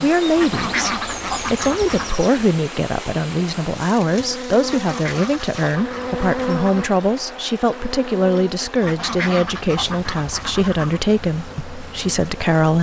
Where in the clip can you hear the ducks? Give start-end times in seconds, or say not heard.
0.3-2.2, 4.7-6.9, 8.8-11.0.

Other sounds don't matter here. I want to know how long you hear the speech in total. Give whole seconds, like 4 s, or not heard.
13 s.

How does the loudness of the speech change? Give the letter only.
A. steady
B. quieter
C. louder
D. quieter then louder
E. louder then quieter
A.